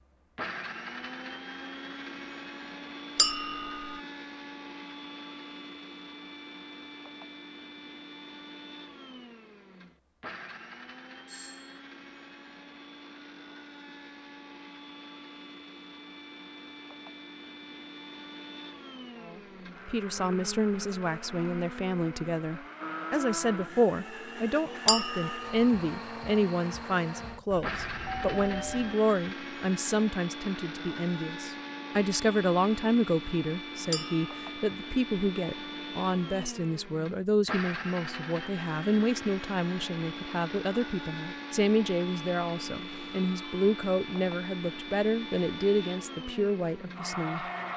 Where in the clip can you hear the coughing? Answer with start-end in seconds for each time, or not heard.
not heard.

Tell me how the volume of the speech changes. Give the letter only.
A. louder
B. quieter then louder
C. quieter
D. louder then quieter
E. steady
E.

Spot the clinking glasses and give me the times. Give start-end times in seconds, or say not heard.
3.1-4.0, 24.9-25.6, 33.9-34.5.